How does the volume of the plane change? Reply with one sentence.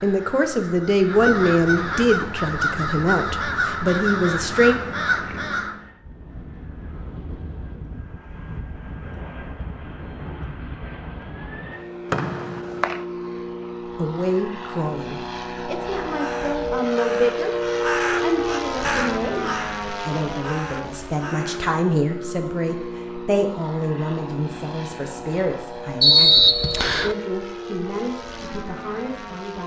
The volume of the plane goes up, then down.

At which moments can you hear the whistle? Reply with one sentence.
The whistle can be heard from 12.1 to 13.0 s and from 26.0 to 27.1 s.